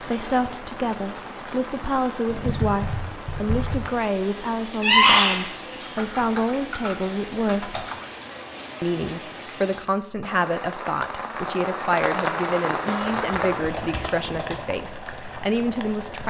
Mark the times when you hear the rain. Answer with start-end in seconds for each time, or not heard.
0.0-16.2.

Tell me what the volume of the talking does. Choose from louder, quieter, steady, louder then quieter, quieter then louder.
steady.